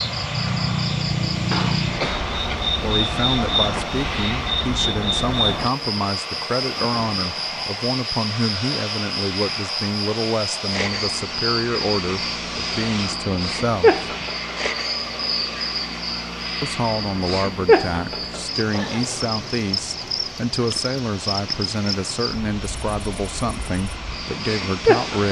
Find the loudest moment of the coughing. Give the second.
2 s.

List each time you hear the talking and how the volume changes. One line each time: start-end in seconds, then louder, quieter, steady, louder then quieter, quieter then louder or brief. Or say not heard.
2.8-13.9 steady
16.6-25.2 steady.